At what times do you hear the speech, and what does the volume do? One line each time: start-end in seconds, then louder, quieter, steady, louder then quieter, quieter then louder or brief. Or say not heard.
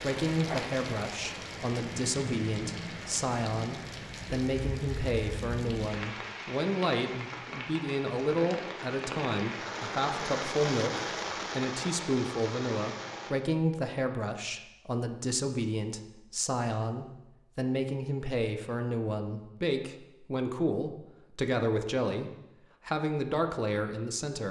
0.0-24.4 steady.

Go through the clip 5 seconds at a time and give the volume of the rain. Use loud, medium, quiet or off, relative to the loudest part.
loud, loud, loud, off, off.